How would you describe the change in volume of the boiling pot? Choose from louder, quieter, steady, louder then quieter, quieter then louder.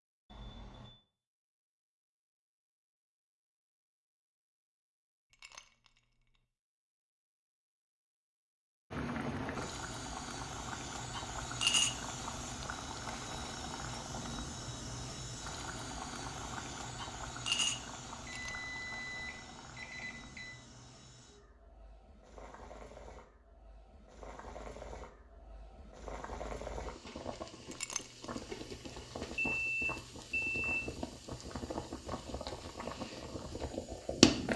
quieter then louder.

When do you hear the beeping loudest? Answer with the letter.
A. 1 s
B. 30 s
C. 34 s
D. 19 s
B.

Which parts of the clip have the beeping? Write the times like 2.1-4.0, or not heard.
0.3-0.9, 18.2-20.6, 29.5-30.8.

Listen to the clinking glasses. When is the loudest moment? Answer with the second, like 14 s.
28 s.